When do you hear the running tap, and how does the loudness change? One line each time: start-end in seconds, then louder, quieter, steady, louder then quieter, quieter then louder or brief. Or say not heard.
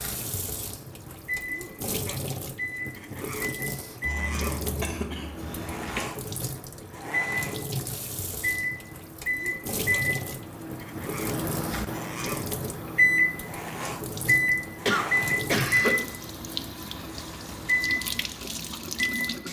0.0-19.4 steady.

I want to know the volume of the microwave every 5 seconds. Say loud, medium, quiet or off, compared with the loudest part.
medium, medium, loud, loud.